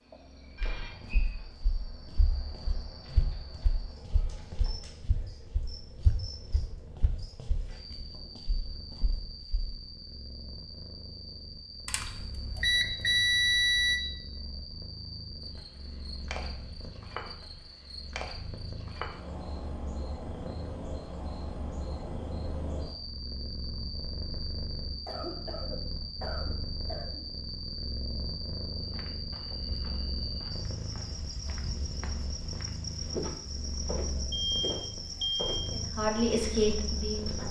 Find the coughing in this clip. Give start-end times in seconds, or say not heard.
25.1-27.2.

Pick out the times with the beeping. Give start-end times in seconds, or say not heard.
11.8-14.0, 34.3-35.5.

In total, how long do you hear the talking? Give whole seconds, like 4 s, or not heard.
2 s.